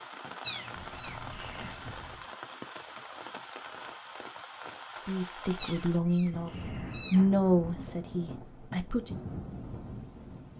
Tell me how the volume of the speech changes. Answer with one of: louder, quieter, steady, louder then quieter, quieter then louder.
louder then quieter.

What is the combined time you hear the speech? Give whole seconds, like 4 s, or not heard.
4 s.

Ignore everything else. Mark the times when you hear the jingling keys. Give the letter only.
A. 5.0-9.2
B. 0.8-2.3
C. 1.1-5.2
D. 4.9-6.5
B.